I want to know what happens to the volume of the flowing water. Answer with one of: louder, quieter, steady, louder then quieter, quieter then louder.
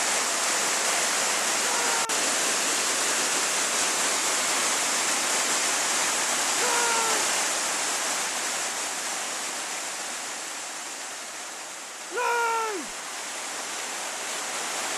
quieter.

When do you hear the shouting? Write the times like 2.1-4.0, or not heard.
1.6-2.3, 6.5-7.2, 12.1-12.9.